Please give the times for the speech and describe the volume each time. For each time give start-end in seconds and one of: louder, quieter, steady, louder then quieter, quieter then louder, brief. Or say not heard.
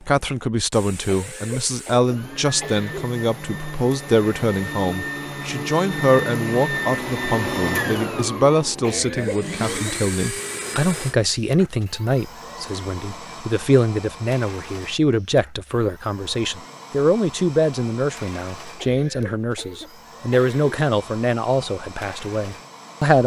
0.1-23.2 steady.